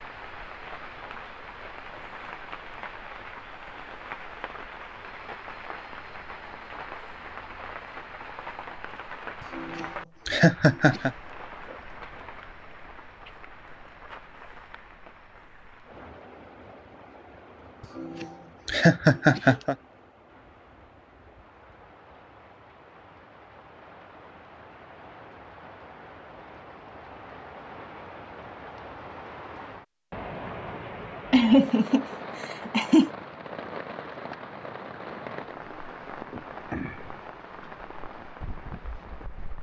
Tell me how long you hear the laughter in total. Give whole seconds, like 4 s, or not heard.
5 s.